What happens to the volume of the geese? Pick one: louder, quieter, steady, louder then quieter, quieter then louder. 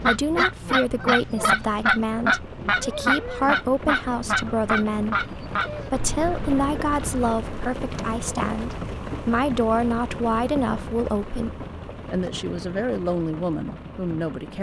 quieter.